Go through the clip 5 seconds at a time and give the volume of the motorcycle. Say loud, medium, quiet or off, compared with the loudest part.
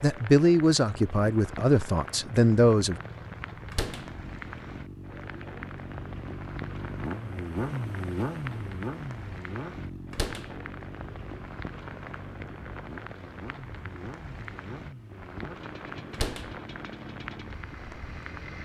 medium, loud, medium, medium.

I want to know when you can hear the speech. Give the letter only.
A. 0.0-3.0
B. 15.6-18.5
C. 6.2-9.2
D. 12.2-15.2
A.